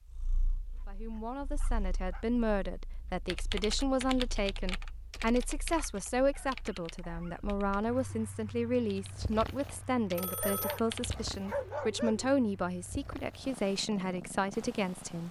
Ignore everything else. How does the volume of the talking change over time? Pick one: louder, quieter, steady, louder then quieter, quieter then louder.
steady.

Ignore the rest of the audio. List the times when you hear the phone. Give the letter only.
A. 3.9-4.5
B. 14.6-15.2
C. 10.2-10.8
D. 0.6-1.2
C.